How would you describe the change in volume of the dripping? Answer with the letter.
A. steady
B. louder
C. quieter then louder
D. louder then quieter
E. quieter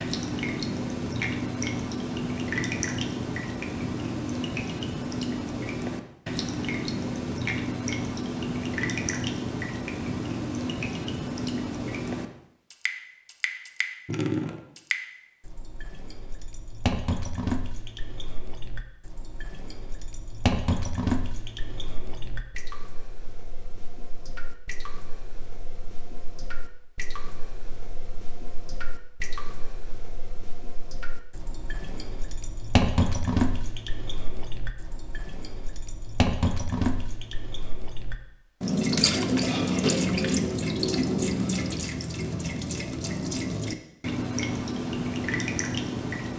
C.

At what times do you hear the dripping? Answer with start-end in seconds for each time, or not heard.
0.0-46.3.